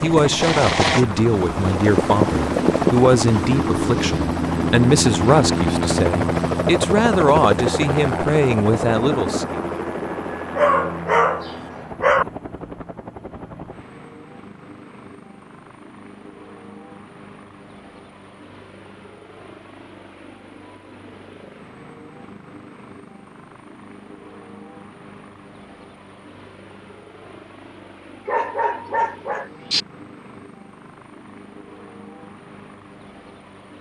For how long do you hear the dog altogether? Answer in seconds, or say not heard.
3 s.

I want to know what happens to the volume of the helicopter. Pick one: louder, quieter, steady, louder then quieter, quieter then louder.
quieter.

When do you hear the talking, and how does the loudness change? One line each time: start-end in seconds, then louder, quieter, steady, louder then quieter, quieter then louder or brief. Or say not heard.
0.0-9.6 steady.